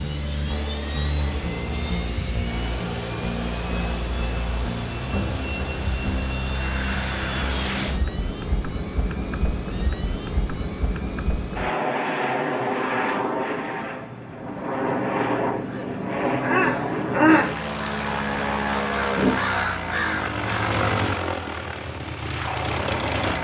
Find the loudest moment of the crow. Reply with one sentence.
The loudest moment of the crow is at 17 seconds.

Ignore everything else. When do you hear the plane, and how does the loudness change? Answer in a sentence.
The plane can be heard from 0.0 to 23.3 s, at a steady volume.